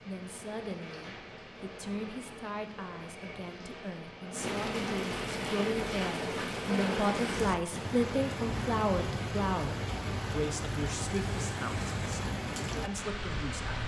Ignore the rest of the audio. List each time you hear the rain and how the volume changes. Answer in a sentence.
You can hear the rain from 0.0 to 13.8 s, getting louder.